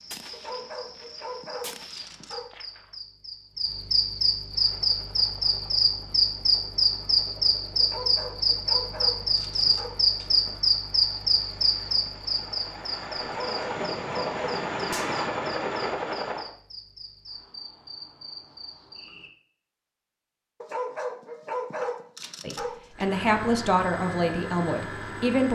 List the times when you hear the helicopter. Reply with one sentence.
The helicopter can be heard from 4.5 to 16.5 s and from 22.9 to 25.5 s.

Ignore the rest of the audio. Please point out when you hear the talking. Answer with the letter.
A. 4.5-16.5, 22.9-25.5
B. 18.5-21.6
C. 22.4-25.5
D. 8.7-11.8
C.